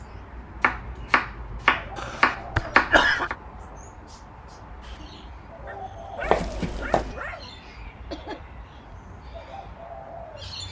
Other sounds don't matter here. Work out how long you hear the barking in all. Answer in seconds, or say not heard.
3 s.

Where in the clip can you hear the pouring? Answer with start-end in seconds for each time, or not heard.
not heard.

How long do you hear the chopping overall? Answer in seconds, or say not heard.
4 s.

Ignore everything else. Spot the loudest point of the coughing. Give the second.
3 s.